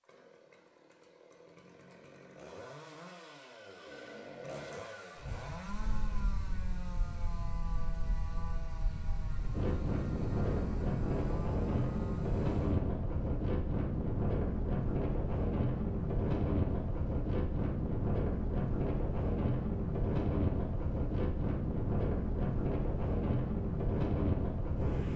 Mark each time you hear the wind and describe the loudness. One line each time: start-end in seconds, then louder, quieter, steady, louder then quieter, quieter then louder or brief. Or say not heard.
5.2-25.1 louder.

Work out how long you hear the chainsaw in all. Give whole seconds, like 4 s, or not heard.
13 s.